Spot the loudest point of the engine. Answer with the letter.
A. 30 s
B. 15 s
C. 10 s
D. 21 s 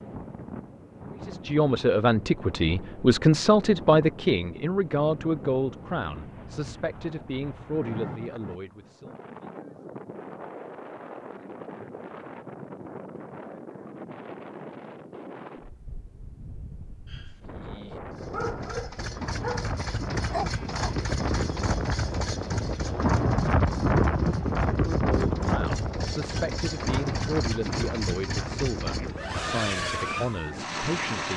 A.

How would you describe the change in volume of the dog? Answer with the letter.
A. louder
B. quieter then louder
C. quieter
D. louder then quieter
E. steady
A.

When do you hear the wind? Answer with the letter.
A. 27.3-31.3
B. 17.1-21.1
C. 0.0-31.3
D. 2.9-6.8
C.